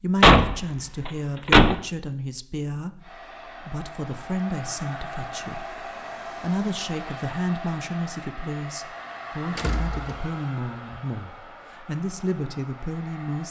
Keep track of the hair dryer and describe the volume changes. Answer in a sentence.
The loudness of the hair dryer goes down.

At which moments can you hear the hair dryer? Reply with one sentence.
The hair dryer can be heard from 3.0 to 13.4 s.